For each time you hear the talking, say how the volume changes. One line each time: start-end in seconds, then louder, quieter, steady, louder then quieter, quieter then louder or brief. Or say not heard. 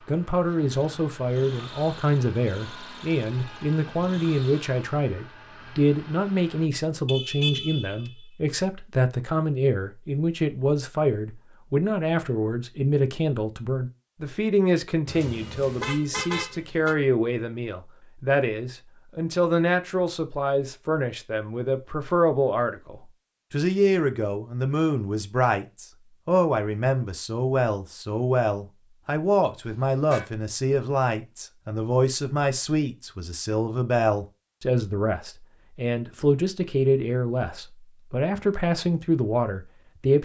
0.1-40.2 steady.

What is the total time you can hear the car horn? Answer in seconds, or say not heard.
4 s.